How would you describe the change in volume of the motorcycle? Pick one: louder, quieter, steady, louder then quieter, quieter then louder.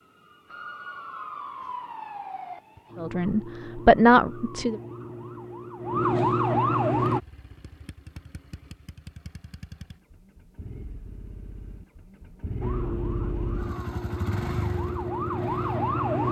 louder.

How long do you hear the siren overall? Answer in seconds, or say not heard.
11 s.